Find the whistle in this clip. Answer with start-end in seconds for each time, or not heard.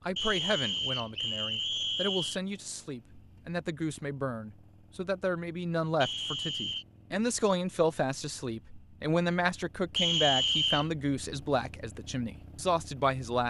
0.1-2.4, 6.0-6.8, 9.9-10.8.